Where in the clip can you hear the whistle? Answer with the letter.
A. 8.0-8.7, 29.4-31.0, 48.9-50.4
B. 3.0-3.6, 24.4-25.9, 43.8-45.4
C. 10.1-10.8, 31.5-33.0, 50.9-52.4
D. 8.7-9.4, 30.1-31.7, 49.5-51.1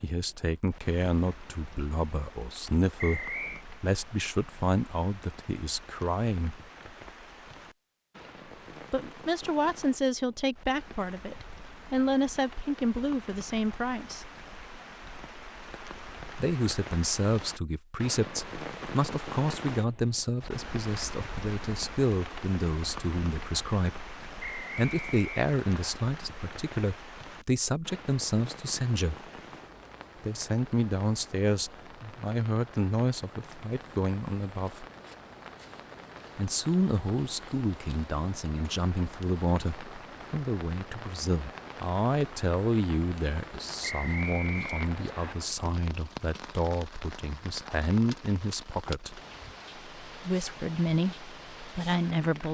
B.